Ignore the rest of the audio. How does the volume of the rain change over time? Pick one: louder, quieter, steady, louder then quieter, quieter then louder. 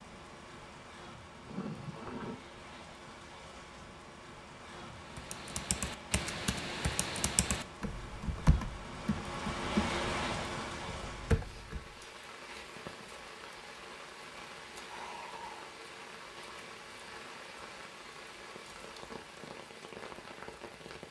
louder then quieter.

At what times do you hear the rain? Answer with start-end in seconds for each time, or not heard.
0.0-21.0.